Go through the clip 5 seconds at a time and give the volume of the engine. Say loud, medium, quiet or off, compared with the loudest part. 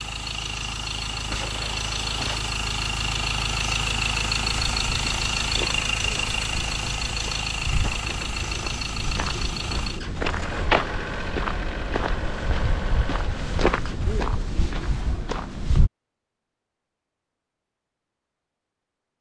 loud, loud, medium, off.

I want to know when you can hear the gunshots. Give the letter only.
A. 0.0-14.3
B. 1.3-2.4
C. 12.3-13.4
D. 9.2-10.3
B.